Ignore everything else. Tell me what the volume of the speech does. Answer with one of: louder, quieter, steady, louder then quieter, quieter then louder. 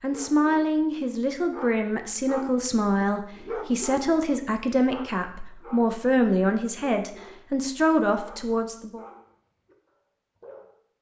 steady.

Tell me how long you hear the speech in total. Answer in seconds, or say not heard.
9 s.